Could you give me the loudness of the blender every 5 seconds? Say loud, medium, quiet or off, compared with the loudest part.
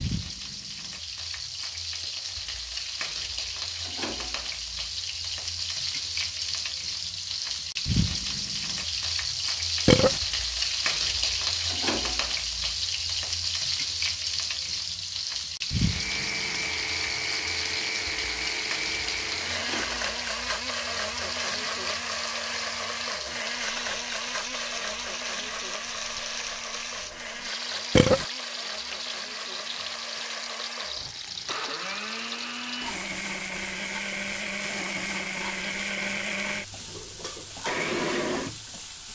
off, off, off, loud, loud, medium, loud, loud.